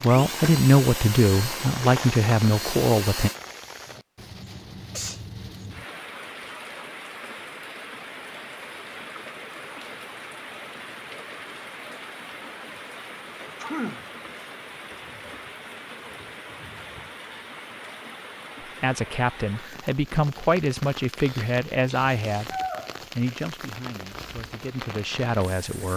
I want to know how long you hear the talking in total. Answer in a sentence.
The talking can be heard for 10 seconds in total.